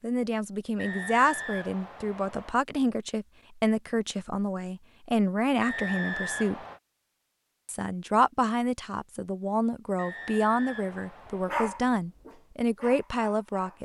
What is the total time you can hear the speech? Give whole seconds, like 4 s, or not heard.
13 s.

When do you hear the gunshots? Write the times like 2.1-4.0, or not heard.
not heard.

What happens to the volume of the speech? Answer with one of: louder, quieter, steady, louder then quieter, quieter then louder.
steady.